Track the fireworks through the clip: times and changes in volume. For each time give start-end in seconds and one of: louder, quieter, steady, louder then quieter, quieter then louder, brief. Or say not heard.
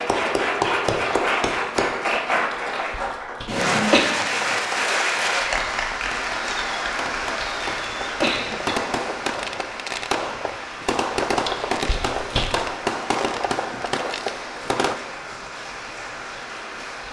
5.5-14.9 louder.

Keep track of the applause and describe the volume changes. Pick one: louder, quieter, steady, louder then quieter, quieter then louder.
quieter.